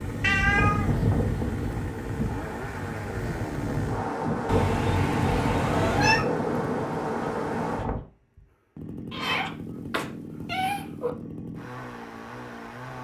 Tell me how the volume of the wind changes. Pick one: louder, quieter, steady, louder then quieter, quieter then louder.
quieter then louder.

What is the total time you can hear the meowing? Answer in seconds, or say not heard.
5 s.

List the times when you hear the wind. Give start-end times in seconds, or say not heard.
0.0-8.0.